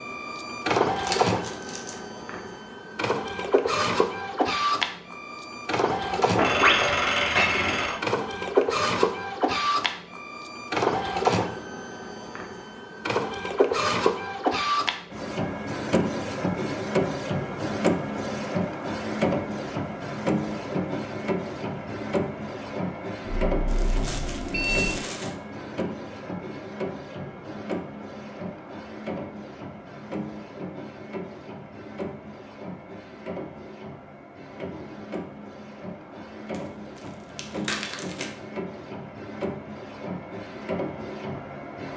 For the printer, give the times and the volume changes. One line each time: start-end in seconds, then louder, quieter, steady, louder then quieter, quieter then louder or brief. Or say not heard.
0.0-41.9 quieter.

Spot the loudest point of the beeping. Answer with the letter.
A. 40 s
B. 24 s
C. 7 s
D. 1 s
C.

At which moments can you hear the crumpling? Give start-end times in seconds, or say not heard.
0.9-1.9, 23.6-25.4, 36.5-38.3.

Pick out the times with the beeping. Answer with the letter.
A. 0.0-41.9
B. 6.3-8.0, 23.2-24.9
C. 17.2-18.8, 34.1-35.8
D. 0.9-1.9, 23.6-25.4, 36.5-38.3
B.